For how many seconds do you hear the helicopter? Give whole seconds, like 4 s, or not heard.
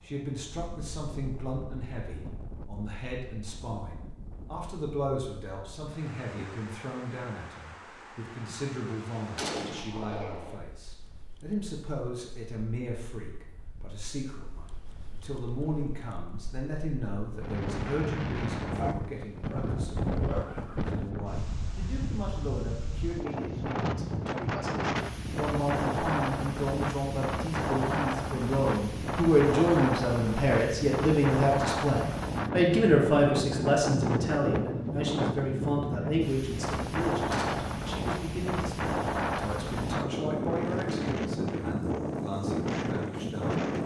not heard.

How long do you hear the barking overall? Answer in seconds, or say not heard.
2 s.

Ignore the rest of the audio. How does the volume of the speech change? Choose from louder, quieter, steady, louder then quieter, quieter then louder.
louder then quieter.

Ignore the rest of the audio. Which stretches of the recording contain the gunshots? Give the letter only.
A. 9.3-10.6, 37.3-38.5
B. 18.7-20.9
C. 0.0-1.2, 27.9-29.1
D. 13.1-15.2
A.